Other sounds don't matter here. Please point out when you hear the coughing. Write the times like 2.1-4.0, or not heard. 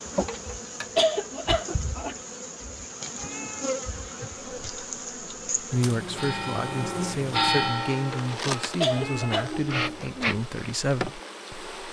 0.2-2.1, 8.1-9.6.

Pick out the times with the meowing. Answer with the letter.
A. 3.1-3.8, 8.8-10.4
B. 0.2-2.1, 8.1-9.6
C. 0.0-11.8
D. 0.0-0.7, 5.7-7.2
A.